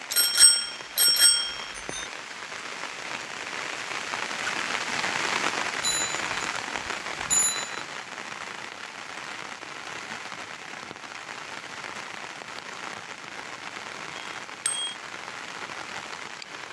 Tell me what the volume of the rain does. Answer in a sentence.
The volume of the rain goes up, then down.